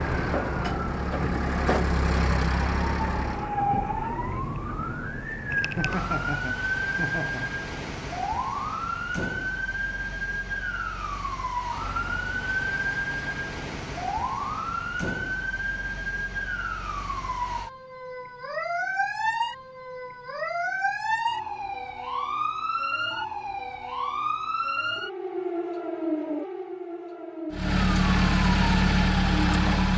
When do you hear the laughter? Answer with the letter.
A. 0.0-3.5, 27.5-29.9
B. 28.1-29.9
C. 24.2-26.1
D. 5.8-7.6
D.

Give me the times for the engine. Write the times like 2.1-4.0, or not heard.
0.0-3.5, 27.5-29.9.